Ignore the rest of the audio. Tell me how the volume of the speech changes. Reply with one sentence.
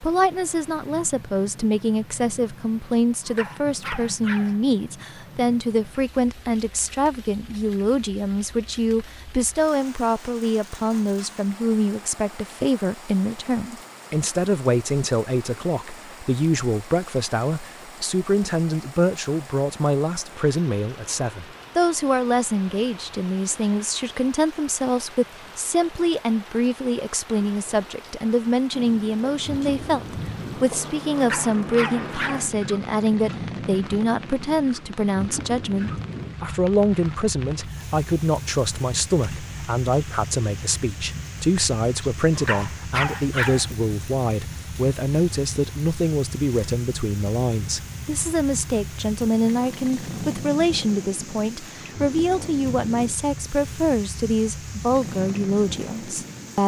The loudness of the speech stays about the same.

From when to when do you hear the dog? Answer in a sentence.
You can hear the dog from 2.9 to 4.6 s, from 30.9 to 32.5 s and from 42.0 to 43.7 s.